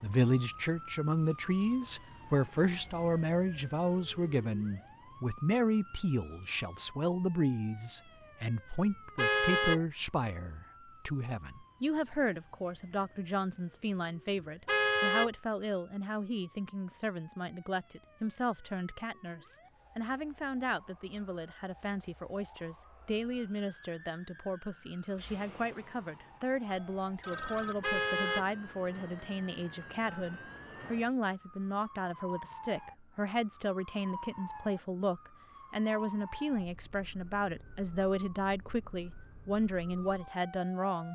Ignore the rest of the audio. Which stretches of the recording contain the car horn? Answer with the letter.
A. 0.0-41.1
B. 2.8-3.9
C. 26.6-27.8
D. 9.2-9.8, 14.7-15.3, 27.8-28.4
D.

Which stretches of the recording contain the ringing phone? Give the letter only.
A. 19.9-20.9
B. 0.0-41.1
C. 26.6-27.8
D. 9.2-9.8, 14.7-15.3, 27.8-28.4
C.